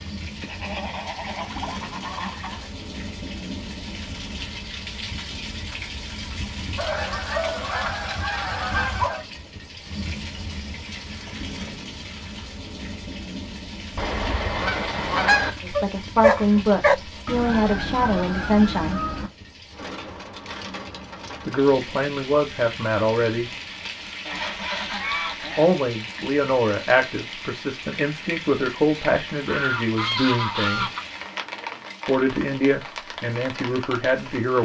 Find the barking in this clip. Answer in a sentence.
The barking can be heard from 15.3 to 16.9 s.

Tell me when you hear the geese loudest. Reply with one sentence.
The volume of the geese peaks at 15 seconds.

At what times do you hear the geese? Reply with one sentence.
The geese can be heard from 0.4 to 2.7 s, from 6.8 to 9.2 s, from 13.9 to 15.5 s, from 17.2 to 19.3 s, from 24.2 to 25.8 s and from 29.4 to 31.0 s.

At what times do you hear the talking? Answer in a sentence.
The talking can be heard from 15.6 to 19.0 s, from 21.4 to 23.5 s, from 25.6 to 30.9 s and from 32.0 to 34.6 s.